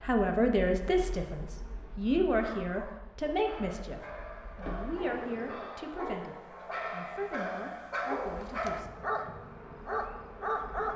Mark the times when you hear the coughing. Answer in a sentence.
The coughing can't be heard in this clip.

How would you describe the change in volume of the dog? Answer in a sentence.
The loudness of the dog goes up.